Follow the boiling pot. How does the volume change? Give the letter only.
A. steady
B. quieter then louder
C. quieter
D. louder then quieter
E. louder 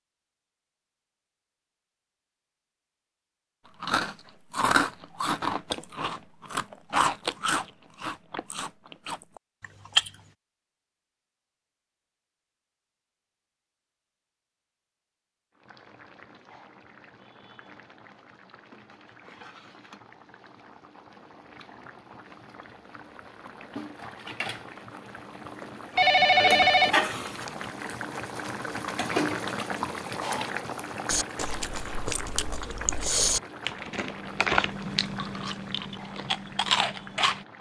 D.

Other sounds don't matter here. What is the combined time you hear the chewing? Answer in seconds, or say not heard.
13 s.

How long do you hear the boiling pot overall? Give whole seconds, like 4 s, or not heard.
22 s.